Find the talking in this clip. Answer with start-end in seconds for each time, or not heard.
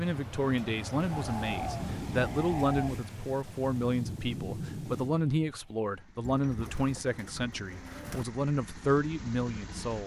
0.0-10.0.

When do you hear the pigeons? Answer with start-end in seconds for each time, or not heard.
1.0-3.0, 6.2-8.2.